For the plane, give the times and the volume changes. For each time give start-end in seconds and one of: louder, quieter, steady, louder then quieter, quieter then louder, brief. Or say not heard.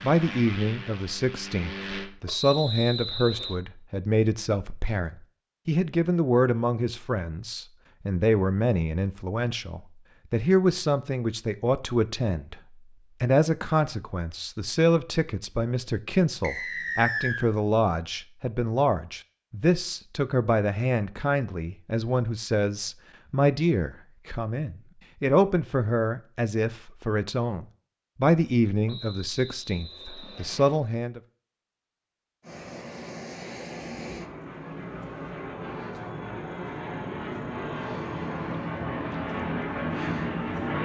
0.0-2.1 brief
32.4-40.8 louder.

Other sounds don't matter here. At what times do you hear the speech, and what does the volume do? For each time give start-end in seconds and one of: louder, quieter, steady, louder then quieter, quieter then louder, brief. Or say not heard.
0.0-12.6 steady
13.2-31.2 steady.